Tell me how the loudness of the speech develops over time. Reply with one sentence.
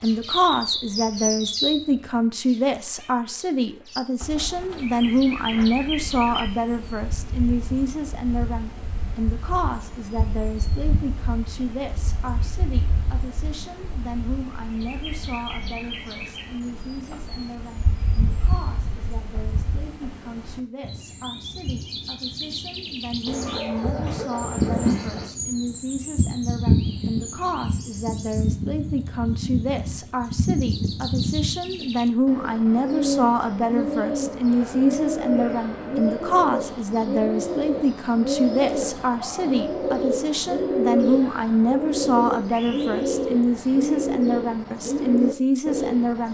The loudness of the speech goes down, then up.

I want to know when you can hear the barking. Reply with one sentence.
The barking can be heard from 23.2 to 25.2 s.